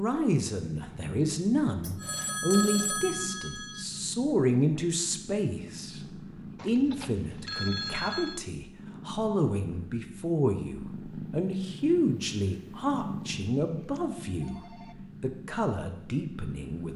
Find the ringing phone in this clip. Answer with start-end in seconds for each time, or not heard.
1.8-3.9, 6.5-8.4, 13.8-14.9.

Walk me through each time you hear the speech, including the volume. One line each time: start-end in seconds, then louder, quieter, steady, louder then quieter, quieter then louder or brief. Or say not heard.
0.0-14.6 steady
15.2-16.9 brief.